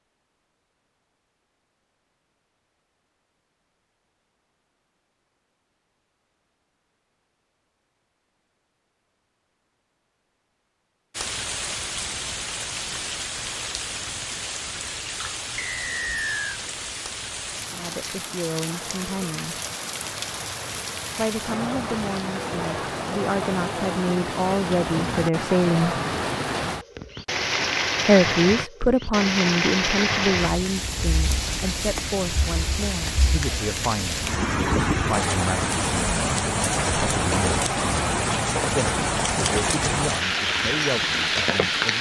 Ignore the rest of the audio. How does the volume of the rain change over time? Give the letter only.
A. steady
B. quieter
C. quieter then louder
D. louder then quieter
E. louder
E.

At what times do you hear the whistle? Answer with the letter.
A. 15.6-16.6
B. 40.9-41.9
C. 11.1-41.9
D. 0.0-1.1
A.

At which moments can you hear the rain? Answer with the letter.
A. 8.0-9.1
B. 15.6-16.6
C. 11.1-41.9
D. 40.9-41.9
C.